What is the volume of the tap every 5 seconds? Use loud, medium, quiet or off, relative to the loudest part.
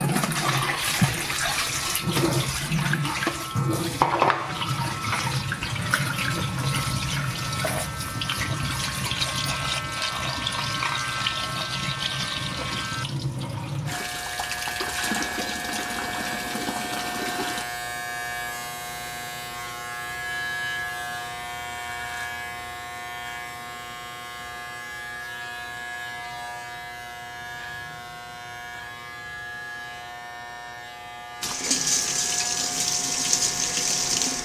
loud, loud, medium, medium, off, off, loud.